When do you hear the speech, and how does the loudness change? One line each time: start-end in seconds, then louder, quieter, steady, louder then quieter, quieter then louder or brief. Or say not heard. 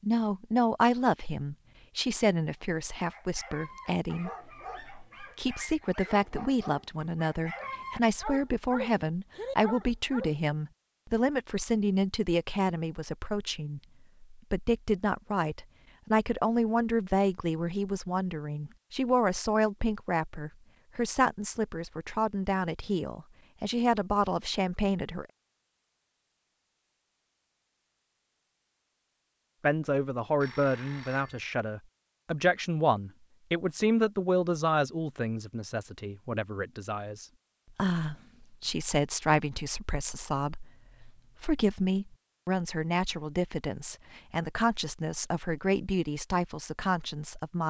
0.0-25.2 steady
29.6-47.6 steady.